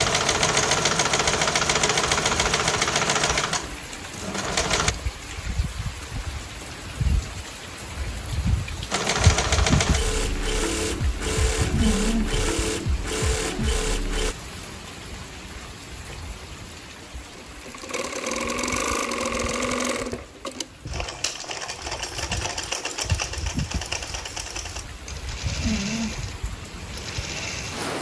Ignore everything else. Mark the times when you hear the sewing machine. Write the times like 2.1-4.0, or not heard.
0.0-5.0, 8.9-14.3, 16.1-27.9.